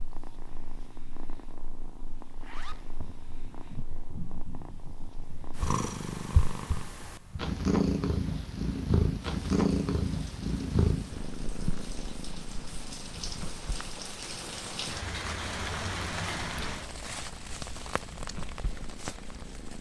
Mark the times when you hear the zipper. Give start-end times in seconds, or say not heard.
2.3-2.9.